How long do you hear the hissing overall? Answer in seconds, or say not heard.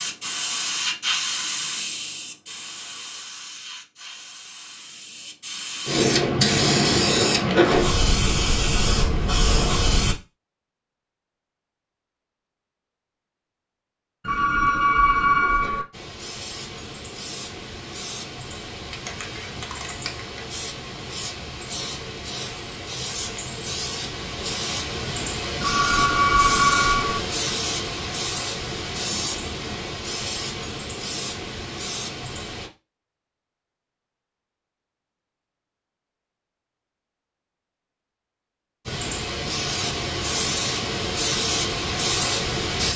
31 s.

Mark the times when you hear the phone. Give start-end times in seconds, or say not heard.
14.2-15.8, 25.6-27.2.